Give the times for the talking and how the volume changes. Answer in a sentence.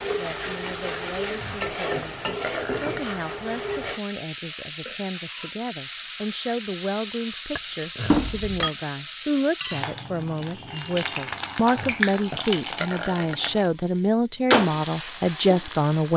The talking can be heard from 0.0 to 16.1 s, getting louder.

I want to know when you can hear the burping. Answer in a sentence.
The burping can be heard from 0.9 to 3.1 s, from 7.5 to 8.2 s and from 11.3 to 13.5 s.